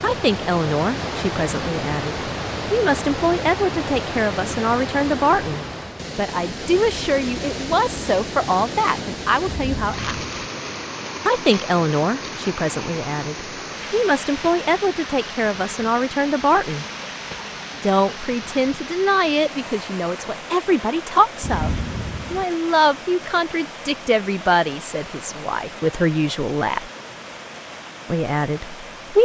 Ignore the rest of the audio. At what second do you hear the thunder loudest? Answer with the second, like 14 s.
22 s.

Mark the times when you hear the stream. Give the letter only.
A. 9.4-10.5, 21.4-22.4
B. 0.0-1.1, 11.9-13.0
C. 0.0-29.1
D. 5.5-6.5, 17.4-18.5
C.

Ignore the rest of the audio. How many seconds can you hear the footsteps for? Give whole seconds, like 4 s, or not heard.
not heard.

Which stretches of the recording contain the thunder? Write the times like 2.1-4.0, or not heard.
9.4-10.5, 21.4-22.4.